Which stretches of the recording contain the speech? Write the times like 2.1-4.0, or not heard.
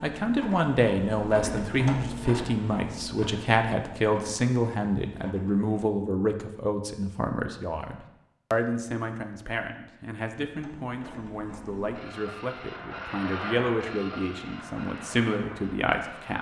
0.0-16.3.